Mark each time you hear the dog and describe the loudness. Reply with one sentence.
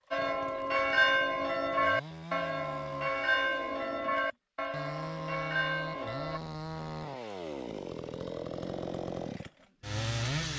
You can't hear the dog here.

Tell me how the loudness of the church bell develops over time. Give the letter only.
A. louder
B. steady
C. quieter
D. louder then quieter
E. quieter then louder
C.